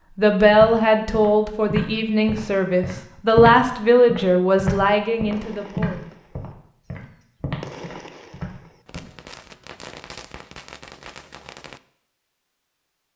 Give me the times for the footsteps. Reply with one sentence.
The footsteps can be heard from 0.5 to 9.1 s.